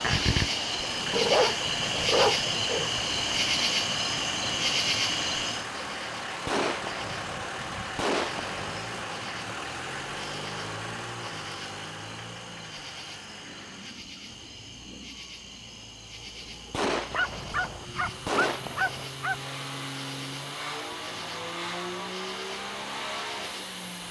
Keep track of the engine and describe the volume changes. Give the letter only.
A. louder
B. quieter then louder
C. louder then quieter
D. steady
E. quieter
B.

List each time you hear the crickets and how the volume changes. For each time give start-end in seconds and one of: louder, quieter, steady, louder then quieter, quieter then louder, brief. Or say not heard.
0.0-24.0 quieter.